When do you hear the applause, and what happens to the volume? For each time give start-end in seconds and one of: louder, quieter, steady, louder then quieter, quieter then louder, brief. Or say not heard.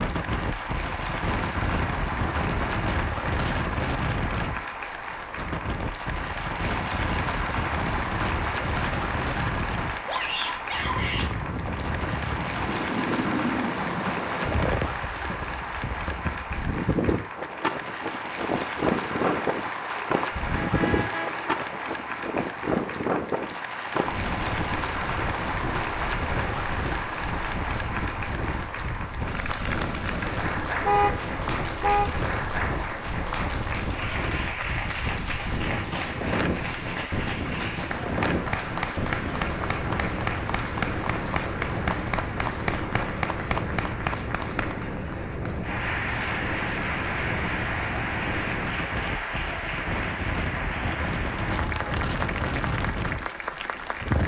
0.0-54.2 steady.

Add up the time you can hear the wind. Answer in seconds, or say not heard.
54 s.